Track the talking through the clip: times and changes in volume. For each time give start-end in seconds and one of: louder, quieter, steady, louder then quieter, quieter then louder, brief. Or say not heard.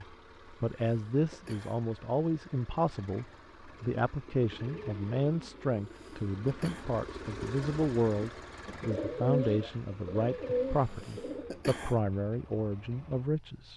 0.0-13.7 steady.